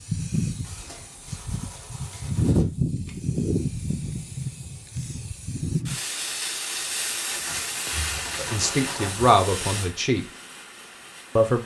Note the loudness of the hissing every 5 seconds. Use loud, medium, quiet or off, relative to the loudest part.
loud, loud, quiet.